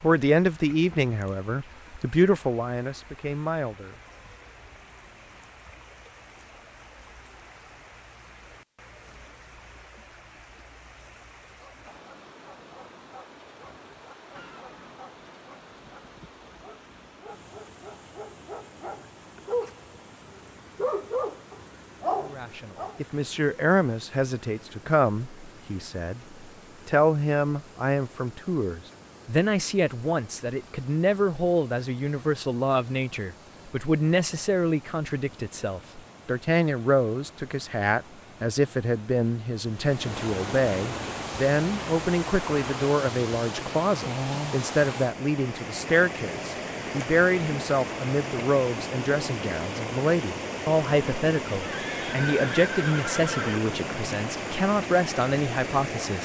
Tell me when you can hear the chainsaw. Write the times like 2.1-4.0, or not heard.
not heard.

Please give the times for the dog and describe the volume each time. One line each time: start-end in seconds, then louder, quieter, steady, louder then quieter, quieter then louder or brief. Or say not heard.
11.4-19.8 louder
20.8-23.0 brief.